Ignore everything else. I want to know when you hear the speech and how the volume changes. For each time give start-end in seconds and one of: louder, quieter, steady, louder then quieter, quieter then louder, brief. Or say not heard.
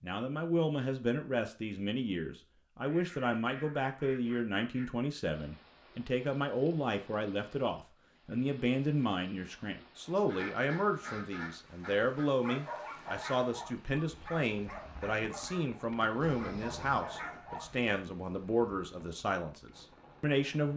0.0-20.7 steady.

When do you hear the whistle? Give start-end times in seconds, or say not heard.
not heard.